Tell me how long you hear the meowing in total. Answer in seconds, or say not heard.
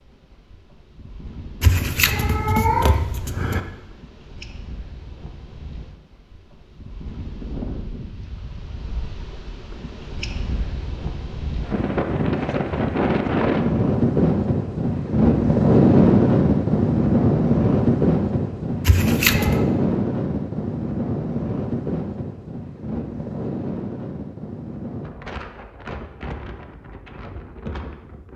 3 s.